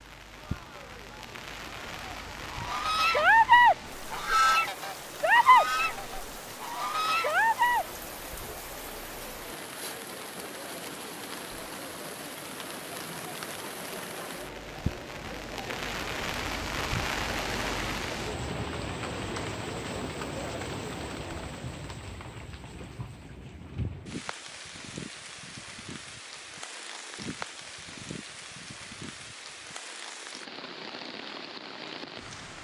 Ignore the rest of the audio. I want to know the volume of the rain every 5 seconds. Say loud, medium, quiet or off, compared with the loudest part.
medium, medium, medium, loud, medium, medium, medium.